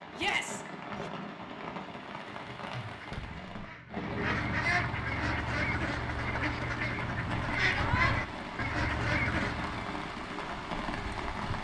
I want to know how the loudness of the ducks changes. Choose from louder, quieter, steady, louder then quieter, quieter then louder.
louder.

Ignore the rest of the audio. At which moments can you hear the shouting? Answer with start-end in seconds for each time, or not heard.
0.1-1.1, 7.7-8.2.